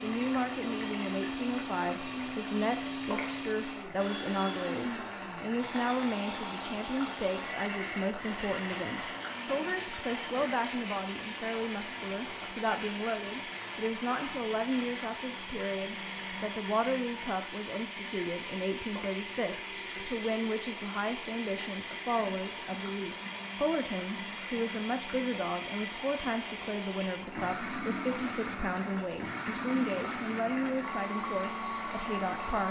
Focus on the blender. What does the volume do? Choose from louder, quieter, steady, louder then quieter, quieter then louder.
steady.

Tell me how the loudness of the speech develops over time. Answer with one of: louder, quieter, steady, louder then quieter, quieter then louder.
steady.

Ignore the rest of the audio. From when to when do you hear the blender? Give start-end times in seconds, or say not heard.
0.0-32.6.